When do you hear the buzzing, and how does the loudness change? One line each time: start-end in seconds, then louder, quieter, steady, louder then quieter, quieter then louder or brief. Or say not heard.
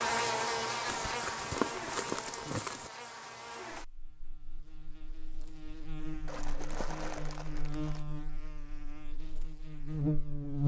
0.0-10.6 quieter then louder.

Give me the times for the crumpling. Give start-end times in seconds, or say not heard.
0.8-2.9, 6.2-8.1.